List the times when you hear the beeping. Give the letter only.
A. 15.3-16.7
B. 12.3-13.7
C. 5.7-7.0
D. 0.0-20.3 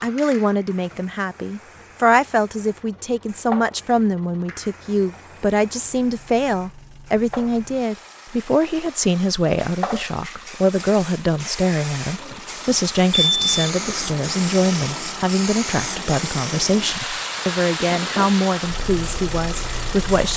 B.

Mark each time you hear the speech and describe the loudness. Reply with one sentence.
The speech can be heard from 0.0 to 20.3 s, at a steady volume.